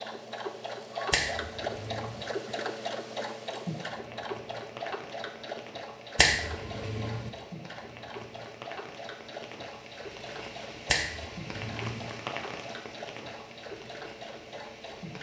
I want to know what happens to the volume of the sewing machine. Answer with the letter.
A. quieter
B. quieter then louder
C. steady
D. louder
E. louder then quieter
A.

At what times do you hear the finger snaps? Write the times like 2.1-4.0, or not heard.
1.1-2.2, 6.2-7.3, 10.8-12.0.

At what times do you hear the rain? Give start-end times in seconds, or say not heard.
0.0-15.1.